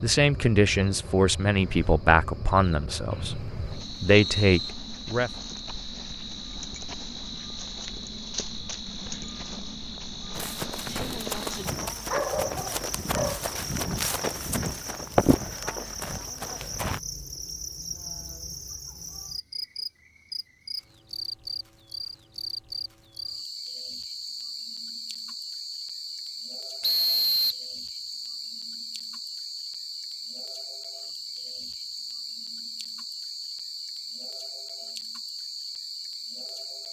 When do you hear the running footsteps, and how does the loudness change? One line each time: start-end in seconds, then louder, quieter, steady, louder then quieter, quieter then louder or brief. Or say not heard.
10.3-17.0 louder then quieter.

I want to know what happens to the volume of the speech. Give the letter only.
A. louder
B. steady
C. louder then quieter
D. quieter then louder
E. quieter
D.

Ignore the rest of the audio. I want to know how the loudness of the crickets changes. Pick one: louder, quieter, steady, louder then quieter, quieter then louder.
steady.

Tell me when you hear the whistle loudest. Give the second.
27 s.